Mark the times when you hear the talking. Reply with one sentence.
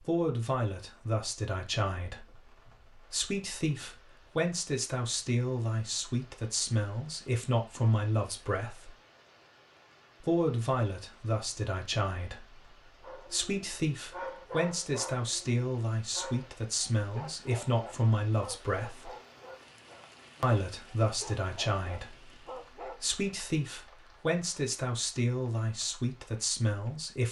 The talking can be heard from 0.0 to 8.9 s, from 10.2 to 19.1 s and from 20.4 to 27.2 s.